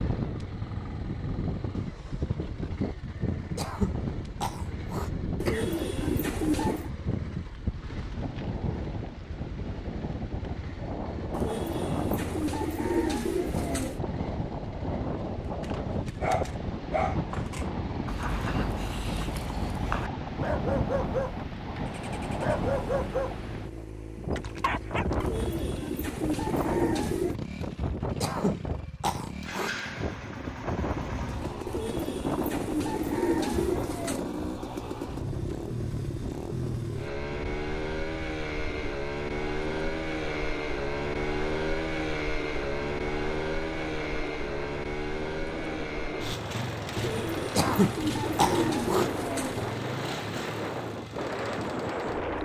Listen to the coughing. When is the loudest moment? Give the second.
48 s.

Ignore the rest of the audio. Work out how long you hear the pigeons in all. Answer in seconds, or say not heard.
12 s.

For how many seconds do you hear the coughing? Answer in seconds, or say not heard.
5 s.